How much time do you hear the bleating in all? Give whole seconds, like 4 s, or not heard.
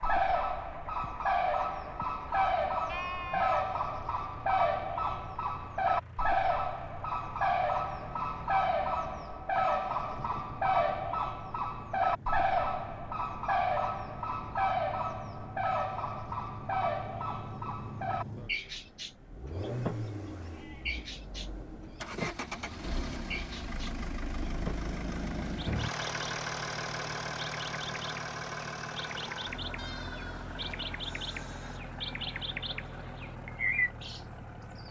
3 s.